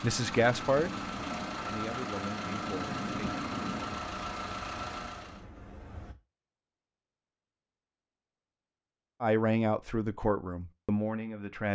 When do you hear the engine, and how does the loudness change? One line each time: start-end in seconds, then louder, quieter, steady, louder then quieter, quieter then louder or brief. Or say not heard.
0.0-5.5 steady.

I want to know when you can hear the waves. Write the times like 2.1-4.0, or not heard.
0.1-6.2.